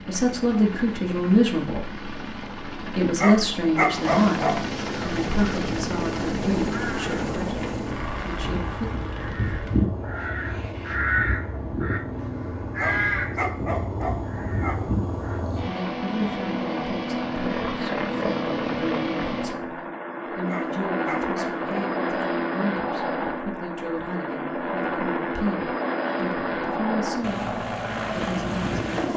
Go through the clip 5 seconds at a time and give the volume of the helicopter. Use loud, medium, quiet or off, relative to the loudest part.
medium, loud, medium, loud, loud, loud.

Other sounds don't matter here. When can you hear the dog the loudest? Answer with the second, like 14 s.
4 s.